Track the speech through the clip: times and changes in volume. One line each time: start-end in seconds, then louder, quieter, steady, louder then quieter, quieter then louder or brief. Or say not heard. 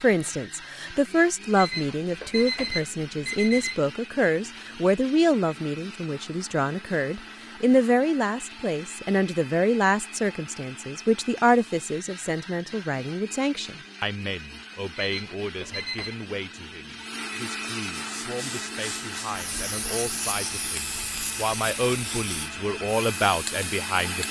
0.0-24.2 quieter then louder.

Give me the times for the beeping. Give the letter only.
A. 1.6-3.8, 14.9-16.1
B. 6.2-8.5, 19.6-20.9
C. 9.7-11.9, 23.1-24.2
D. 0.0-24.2
A.